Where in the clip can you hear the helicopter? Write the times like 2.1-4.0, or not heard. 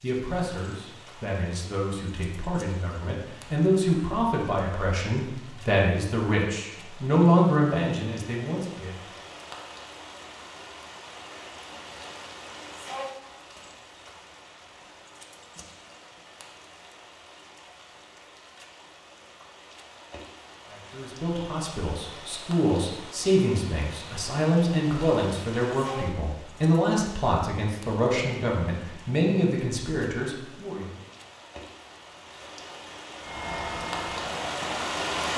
33.2-35.3.